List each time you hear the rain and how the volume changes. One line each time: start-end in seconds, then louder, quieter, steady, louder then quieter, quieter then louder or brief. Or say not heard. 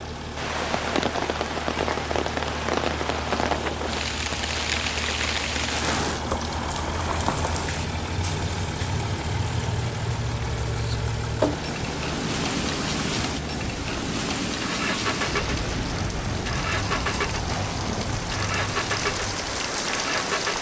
0.1-20.5 steady.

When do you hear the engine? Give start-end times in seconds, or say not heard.
0.0-20.5.